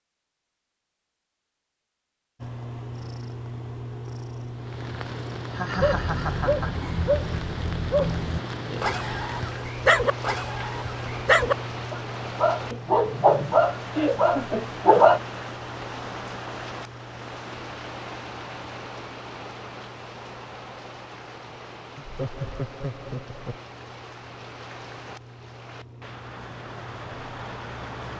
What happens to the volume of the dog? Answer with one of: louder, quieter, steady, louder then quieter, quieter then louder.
louder.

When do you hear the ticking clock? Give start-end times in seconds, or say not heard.
not heard.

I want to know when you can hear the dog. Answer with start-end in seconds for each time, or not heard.
5.8-15.2.